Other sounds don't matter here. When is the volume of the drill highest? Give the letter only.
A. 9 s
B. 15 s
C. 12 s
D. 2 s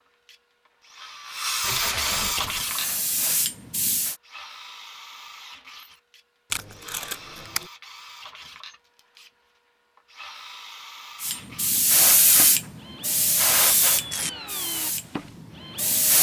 D.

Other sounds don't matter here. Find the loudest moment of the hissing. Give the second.
12 s.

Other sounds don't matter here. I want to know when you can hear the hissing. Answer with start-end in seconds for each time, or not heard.
2.5-4.2, 11.2-16.1.